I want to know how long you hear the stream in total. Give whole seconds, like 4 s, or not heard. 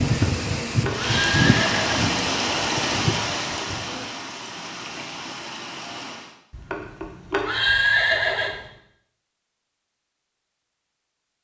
6 s.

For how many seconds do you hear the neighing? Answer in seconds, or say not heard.
4 s.